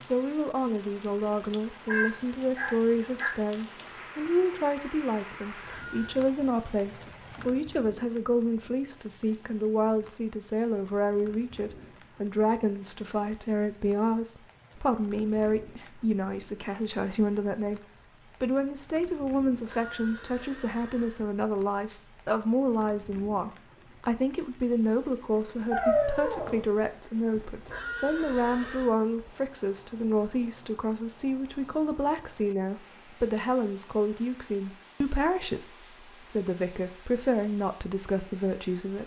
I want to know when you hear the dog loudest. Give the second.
26 s.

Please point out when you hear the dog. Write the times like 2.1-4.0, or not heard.
1.9-3.3, 25.7-26.6.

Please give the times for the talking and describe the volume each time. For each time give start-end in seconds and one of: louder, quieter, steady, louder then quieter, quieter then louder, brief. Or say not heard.
0.0-17.8 steady
18.4-39.0 steady.